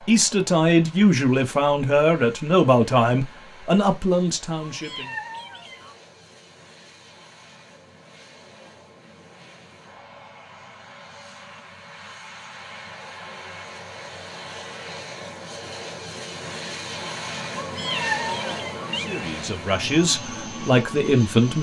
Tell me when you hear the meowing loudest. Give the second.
18 s.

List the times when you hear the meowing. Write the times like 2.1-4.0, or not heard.
4.7-6.0, 17.6-19.2.